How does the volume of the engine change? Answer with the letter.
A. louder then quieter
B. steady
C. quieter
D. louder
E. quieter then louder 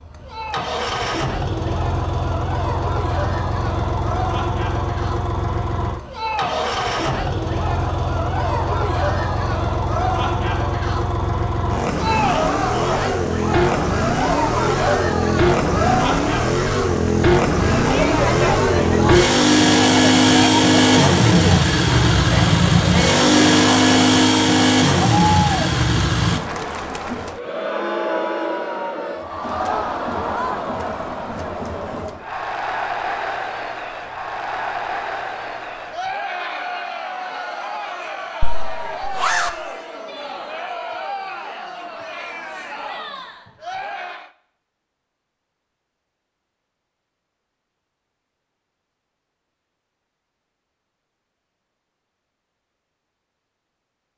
D.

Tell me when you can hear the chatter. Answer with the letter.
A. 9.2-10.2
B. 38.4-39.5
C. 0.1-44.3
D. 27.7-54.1
C.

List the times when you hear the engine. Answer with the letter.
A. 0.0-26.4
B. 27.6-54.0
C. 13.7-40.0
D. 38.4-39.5
A.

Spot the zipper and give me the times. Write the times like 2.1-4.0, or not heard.
38.4-39.5.